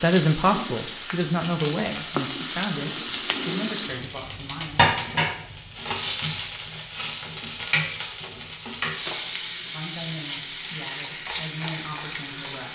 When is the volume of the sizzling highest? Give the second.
5 s.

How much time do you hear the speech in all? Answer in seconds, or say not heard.
8 s.